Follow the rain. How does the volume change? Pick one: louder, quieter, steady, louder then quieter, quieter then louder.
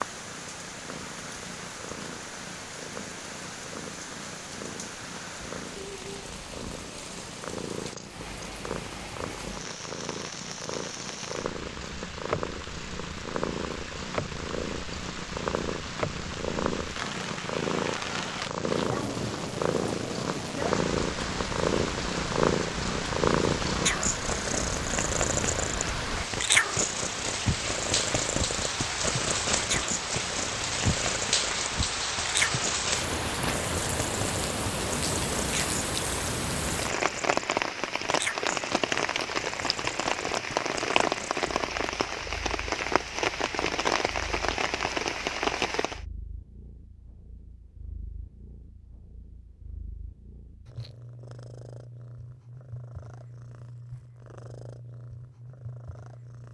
louder.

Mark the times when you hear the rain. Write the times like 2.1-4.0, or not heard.
0.0-46.0.